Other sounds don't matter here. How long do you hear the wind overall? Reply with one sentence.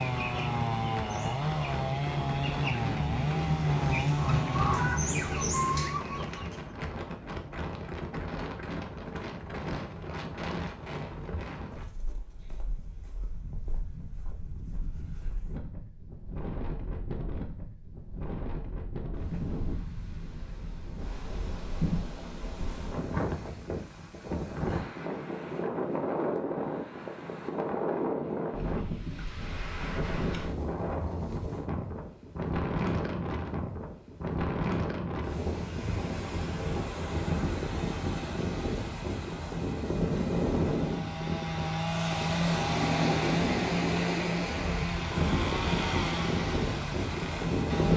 You can hear the wind for 48 seconds altogether.